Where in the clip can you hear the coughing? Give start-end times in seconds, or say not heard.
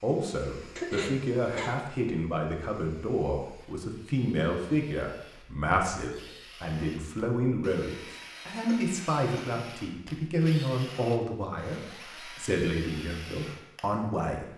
0.8-1.8, 8.7-9.6.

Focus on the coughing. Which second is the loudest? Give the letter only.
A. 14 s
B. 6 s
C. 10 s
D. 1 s
D.